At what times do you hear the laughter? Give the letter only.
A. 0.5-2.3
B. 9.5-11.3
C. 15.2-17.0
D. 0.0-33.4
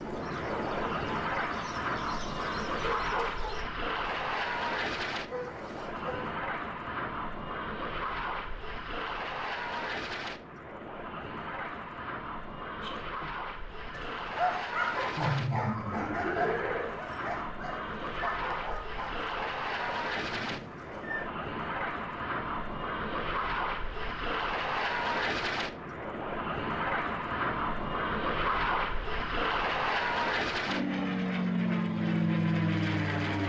C.